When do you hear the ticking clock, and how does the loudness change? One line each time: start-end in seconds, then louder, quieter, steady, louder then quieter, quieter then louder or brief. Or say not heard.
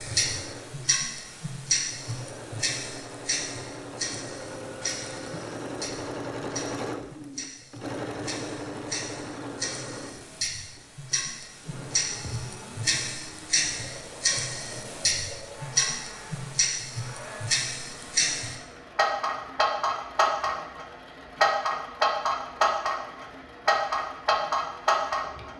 0.0-25.5 quieter then louder.